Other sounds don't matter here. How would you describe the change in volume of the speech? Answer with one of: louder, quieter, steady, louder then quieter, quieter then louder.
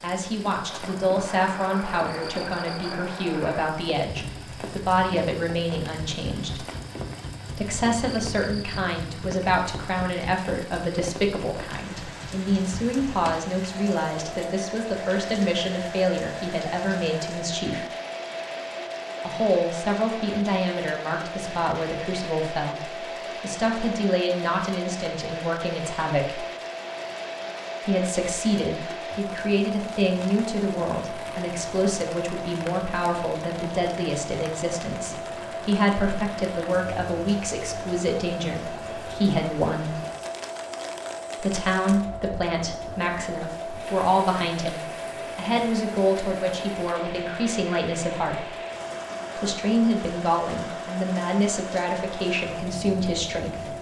steady.